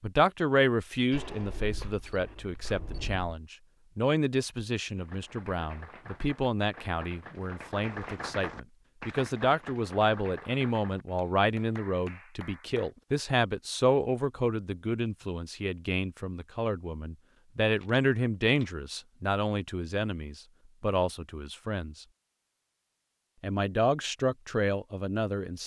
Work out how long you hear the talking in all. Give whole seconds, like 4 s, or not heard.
24 s.